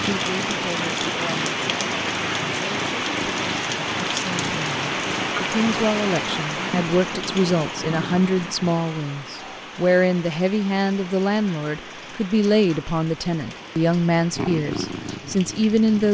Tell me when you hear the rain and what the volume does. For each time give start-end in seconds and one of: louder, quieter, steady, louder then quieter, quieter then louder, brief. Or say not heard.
0.0-16.1 quieter.